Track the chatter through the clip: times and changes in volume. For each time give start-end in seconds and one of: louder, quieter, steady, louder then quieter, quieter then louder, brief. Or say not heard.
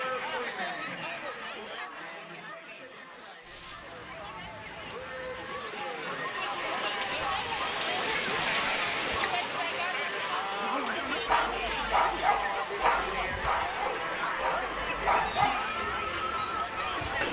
0.0-17.2 louder.